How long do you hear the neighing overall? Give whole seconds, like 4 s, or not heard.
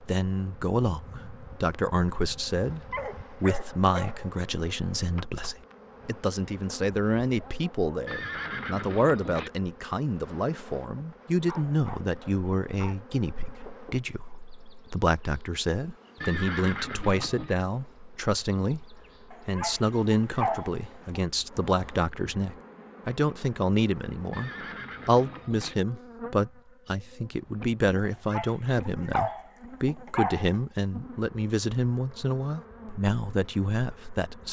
4 s.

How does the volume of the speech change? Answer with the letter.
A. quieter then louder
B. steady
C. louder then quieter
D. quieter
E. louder
B.